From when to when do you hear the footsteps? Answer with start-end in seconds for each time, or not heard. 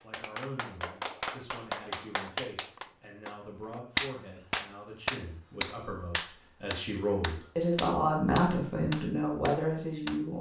not heard.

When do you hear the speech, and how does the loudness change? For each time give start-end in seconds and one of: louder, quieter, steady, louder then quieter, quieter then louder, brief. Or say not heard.
0.0-10.3 louder.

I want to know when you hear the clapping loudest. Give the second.
4 s.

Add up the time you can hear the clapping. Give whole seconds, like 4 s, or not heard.
10 s.